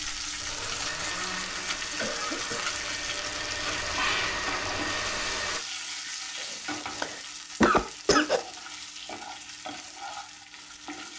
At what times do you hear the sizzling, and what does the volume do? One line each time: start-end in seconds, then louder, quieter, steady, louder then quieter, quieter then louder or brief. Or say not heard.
0.0-11.1 quieter.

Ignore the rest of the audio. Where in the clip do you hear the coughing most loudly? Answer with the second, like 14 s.
8 s.